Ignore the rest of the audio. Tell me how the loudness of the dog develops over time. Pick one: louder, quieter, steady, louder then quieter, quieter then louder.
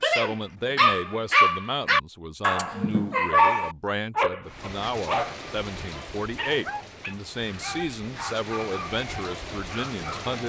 quieter.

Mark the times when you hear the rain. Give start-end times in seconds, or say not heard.
4.5-10.4.